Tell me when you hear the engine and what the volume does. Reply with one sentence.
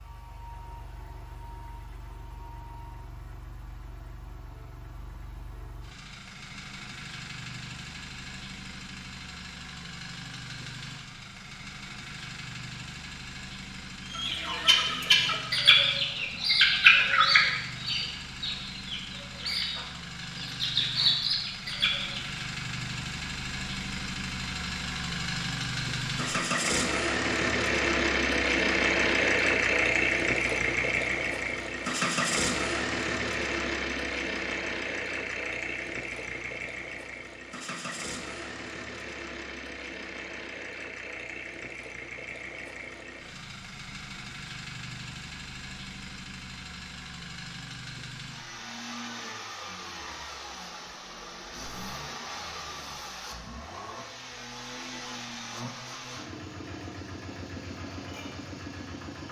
The engine can be heard from 0.0 to 59.2 s, getting louder then quieter.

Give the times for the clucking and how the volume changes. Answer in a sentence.
You can hear the clucking from 14.1 to 22.4 s, getting quieter then louder.